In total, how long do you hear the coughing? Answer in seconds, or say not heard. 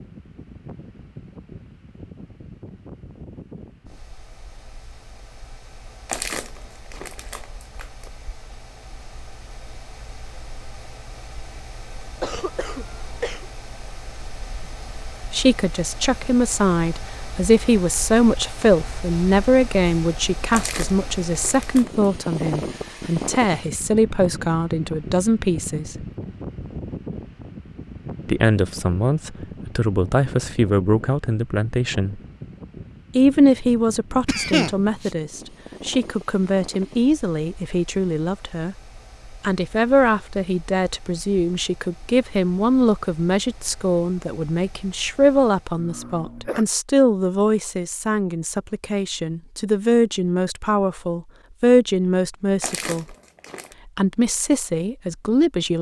3 s.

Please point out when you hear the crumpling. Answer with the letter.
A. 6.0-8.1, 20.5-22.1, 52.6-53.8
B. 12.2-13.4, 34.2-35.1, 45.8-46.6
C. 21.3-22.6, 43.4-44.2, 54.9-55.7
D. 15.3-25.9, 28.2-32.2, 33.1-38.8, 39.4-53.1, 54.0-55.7
A.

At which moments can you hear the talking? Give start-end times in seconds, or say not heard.
15.3-25.9, 28.2-32.2, 33.1-38.8, 39.4-53.1, 54.0-55.7.